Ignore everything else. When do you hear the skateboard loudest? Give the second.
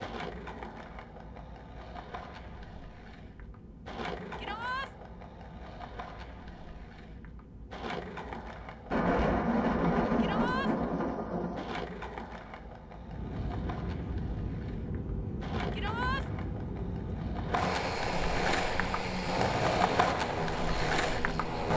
20 s.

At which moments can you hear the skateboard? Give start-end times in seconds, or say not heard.
0.0-21.7.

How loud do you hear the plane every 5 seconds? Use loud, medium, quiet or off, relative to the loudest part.
quiet, quiet, medium, loud, loud.